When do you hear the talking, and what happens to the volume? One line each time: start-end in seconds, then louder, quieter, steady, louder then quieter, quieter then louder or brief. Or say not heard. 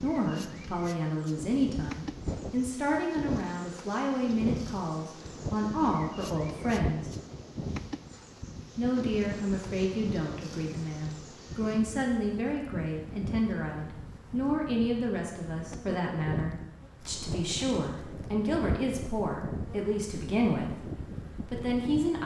0.0-7.1 steady
8.8-22.2 steady.